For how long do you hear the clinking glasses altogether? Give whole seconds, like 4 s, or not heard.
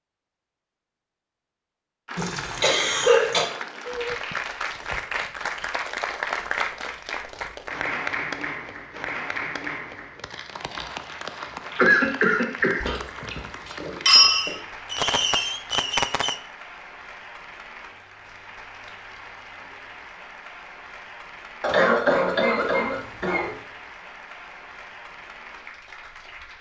2 s.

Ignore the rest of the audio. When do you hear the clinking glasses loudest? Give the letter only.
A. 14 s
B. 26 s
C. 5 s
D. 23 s
A.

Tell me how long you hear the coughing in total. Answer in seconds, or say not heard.
4 s.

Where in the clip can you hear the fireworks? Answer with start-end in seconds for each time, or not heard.
14.2-16.4.